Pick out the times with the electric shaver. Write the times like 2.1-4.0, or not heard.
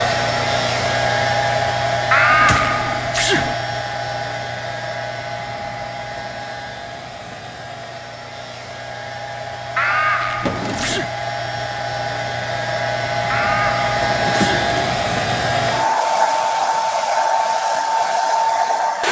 not heard.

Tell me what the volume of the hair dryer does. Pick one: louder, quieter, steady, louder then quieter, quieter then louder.
quieter then louder.